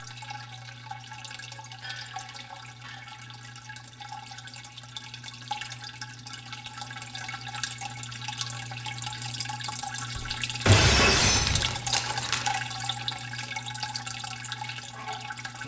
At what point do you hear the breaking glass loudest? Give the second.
11 s.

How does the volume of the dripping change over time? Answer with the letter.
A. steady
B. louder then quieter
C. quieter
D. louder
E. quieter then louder
D.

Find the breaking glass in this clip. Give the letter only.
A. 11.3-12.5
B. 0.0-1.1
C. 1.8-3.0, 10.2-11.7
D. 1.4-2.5
C.